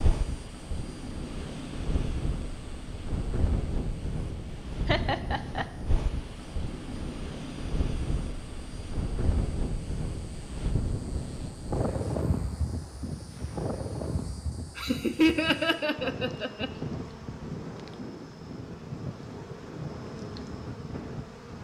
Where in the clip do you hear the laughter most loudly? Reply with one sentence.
The loudest moment of the laughter is at 15 seconds.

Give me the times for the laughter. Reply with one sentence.
The laughter can be heard from 4.8 to 5.7 s and from 14.8 to 16.7 s.